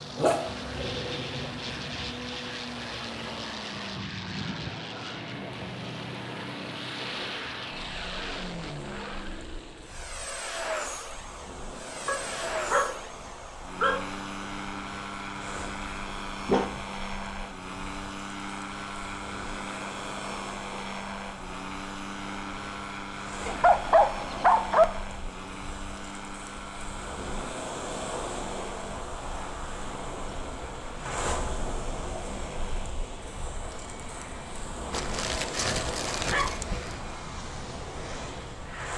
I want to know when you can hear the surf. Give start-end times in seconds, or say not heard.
0.0-38.9.